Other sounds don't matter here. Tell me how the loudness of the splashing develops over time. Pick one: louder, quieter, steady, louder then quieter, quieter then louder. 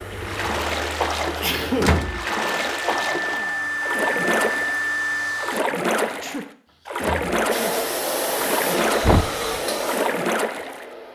steady.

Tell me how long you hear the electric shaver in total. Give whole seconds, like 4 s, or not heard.
not heard.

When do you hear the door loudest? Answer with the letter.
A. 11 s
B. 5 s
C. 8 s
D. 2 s
D.